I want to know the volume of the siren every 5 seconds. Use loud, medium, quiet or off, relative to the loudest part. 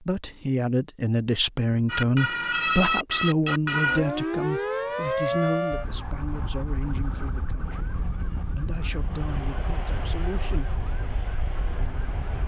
loud, medium, quiet.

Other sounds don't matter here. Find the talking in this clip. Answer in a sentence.
You can hear the talking from 0.0 to 10.8 s.